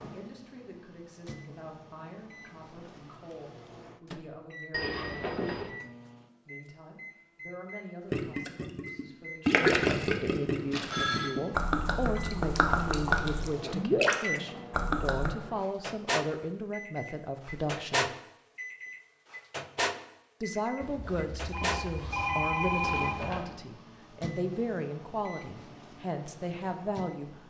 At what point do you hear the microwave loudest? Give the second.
18 s.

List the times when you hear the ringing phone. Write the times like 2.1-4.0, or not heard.
4.7-5.7, 10.7-11.3, 20.8-23.5.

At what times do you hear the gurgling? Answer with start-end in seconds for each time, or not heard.
8.1-15.3.